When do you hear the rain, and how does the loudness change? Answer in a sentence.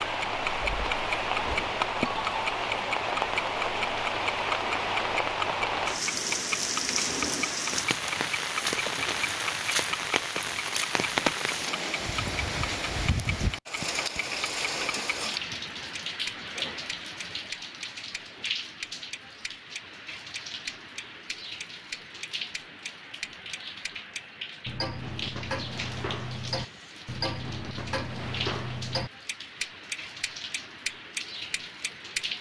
The rain can be heard from 0.0 to 32.3 s, getting quieter.